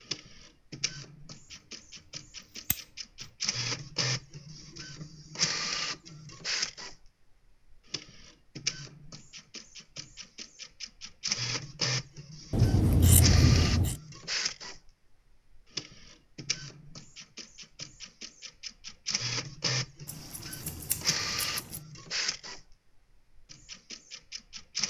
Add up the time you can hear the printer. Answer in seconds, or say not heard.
25 s.